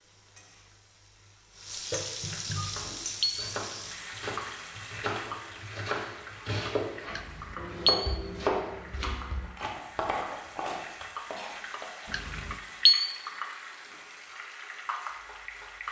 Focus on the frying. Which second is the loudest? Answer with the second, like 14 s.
2 s.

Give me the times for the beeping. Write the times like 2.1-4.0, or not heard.
2.5-3.5, 7.1-8.2, 12.1-13.1.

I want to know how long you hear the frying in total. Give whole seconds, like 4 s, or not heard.
16 s.